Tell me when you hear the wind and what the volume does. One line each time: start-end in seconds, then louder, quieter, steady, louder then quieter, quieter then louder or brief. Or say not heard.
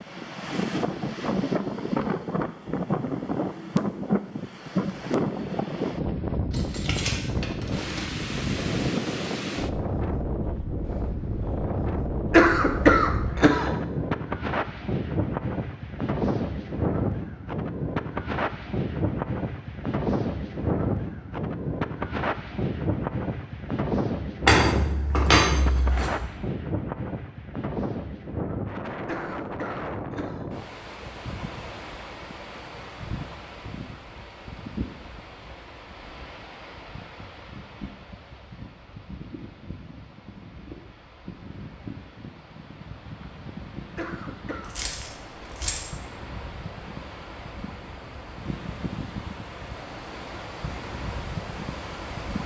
0.0-52.4 quieter.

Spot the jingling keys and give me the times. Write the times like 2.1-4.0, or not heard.
6.5-8.1, 24.4-26.2, 44.8-45.8.